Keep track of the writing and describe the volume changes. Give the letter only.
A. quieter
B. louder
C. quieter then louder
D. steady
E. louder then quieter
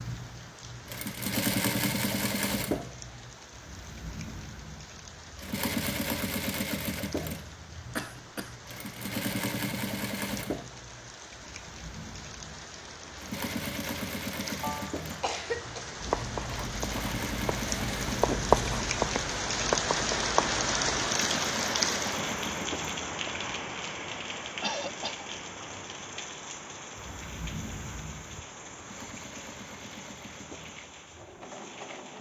E.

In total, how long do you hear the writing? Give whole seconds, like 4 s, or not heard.
5 s.